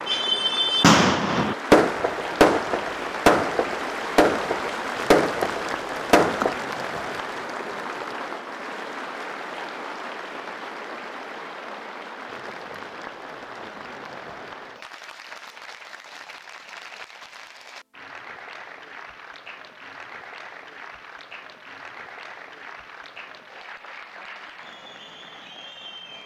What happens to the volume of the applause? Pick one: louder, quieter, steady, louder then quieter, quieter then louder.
quieter.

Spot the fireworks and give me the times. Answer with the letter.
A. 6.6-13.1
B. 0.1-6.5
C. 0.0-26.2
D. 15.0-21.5
B.